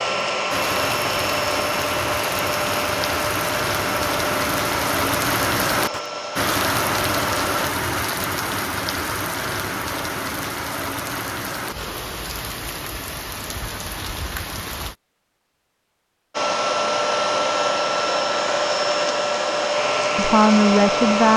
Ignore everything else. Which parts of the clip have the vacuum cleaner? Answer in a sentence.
You can hear the vacuum cleaner from 0.0 to 7.7 s and from 16.3 to 21.3 s.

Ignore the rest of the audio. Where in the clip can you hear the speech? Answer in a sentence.
The speech can be heard from 20.1 to 21.3 s.